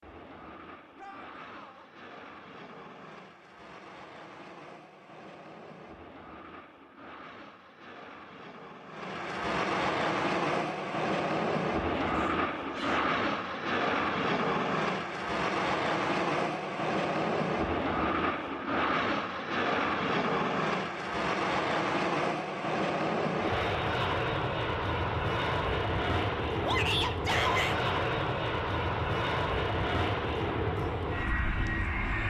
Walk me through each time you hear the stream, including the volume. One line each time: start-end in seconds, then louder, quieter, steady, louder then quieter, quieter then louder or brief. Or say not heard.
not heard.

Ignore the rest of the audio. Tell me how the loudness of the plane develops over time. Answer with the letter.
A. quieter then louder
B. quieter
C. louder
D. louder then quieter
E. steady
C.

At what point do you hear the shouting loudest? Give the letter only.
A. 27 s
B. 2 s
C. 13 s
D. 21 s
A.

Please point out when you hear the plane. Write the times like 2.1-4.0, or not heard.
0.0-32.2.